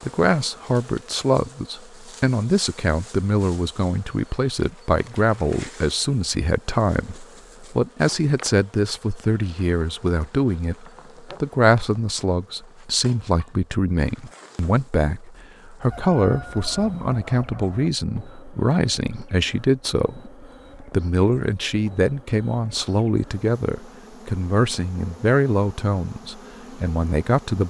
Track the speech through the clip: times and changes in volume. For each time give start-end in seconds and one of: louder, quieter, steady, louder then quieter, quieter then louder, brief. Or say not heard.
0.0-27.6 steady.